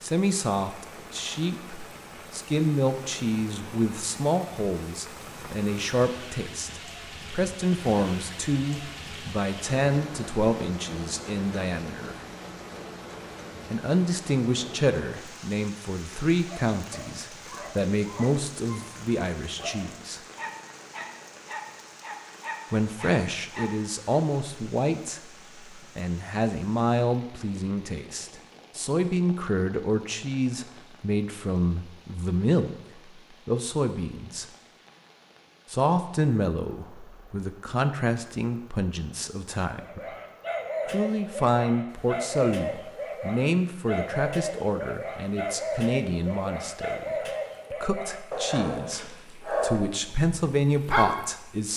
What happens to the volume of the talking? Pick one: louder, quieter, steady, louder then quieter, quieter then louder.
steady.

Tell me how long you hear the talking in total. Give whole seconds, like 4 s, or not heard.
46 s.